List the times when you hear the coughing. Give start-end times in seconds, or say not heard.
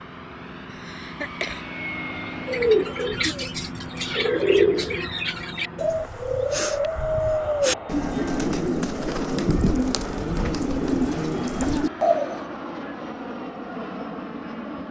0.7-1.6.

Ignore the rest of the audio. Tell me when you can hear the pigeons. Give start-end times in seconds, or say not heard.
2.5-12.4.